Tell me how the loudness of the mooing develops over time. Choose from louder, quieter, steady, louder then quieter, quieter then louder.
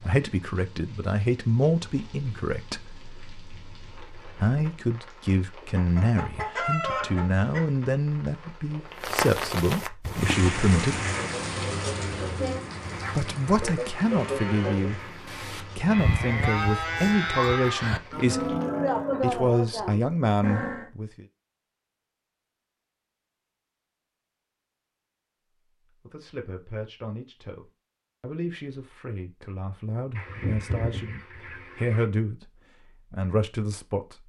louder.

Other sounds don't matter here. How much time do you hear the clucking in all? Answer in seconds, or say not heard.
6 s.